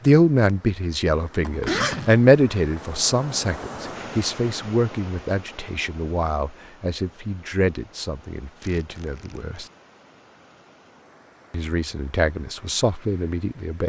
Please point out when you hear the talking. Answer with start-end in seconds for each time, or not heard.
0.1-9.7, 11.5-13.8.